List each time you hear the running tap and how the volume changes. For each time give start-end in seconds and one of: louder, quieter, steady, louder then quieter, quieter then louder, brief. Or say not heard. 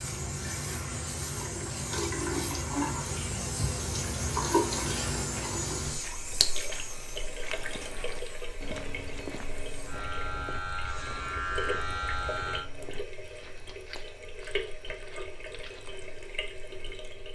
0.0-17.2 quieter.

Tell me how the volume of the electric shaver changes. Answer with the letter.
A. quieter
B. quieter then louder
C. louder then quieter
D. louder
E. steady
B.